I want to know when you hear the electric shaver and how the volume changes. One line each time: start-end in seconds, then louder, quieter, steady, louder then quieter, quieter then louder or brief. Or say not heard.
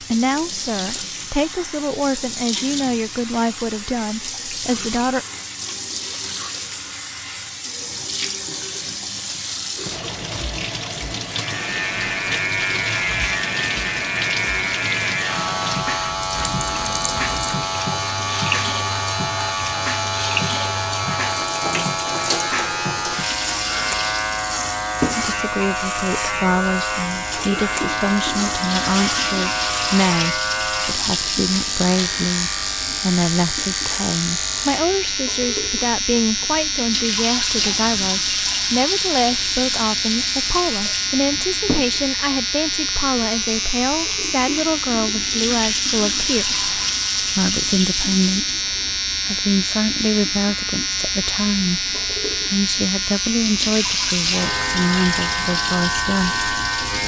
11.2-57.0 steady.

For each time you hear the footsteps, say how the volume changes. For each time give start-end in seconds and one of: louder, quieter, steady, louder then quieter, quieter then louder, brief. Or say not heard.
not heard.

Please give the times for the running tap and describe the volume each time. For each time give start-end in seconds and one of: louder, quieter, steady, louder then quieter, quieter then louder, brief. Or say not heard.
0.0-57.0 steady.